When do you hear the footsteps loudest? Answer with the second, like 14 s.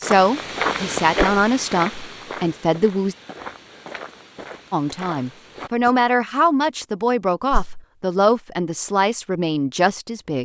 1 s.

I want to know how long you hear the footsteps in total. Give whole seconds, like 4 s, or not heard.
6 s.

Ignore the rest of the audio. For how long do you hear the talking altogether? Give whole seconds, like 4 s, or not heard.
9 s.